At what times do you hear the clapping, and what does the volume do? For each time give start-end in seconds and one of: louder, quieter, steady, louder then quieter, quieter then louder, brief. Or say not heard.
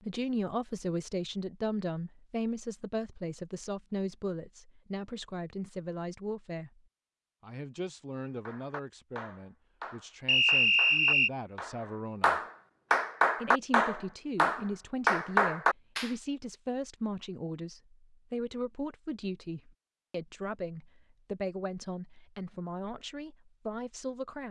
8.4-16.1 louder.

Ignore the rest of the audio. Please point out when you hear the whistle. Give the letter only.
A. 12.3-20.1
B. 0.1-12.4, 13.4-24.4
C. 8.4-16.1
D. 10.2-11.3
D.